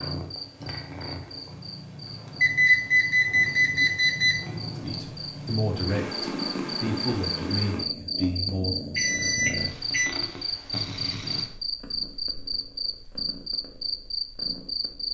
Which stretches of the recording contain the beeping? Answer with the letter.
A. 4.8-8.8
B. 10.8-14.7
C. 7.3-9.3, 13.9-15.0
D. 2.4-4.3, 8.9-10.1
D.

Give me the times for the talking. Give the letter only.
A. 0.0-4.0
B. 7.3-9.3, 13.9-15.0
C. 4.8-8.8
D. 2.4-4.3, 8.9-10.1
C.